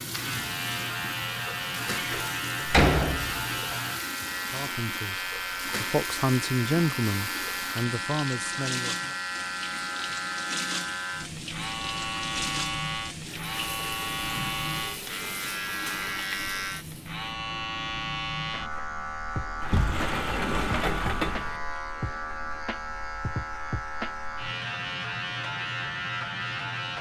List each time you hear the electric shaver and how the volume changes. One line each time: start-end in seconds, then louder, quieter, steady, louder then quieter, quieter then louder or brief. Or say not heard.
0.0-26.9 steady.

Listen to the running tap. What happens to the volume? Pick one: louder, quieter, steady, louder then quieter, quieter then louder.
steady.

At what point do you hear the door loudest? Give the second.
3 s.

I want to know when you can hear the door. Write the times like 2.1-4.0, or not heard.
1.9-3.5, 19.6-21.8.